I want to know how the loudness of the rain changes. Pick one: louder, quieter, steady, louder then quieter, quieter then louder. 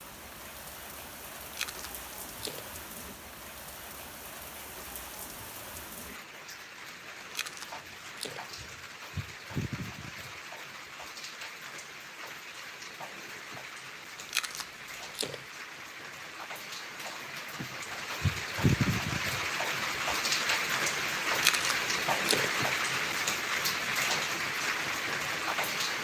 louder.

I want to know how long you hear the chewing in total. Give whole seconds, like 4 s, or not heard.
5 s.